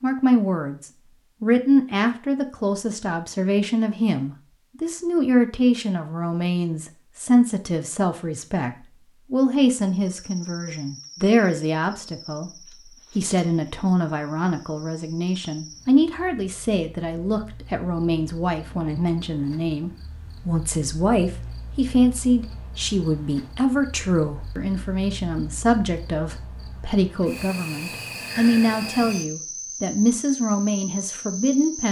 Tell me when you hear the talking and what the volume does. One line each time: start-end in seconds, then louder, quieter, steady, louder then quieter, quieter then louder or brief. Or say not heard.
0.0-31.8 steady.